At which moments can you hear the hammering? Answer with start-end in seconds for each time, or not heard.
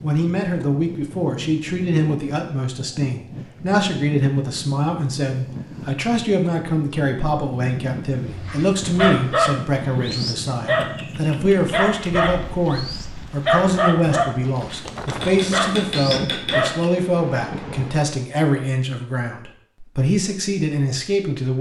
15.1-16.8.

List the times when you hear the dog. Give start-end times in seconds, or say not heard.
8.2-16.9.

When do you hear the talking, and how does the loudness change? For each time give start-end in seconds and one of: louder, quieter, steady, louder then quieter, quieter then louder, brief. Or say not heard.
0.0-21.5 steady.